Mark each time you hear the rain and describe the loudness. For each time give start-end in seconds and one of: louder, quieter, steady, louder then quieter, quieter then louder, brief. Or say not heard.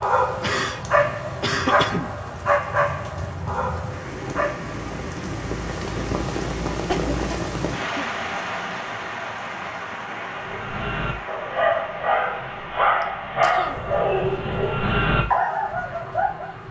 0.0-16.6 louder then quieter.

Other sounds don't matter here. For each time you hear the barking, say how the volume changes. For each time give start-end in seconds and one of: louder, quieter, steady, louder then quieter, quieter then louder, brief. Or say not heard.
0.0-4.8 quieter
10.3-16.5 steady.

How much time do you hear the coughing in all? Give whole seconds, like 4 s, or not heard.
4 s.